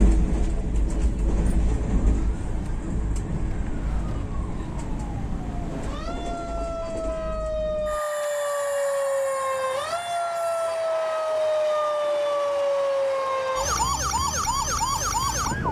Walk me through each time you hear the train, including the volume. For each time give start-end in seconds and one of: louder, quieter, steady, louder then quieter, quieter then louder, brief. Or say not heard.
0.0-15.6 quieter.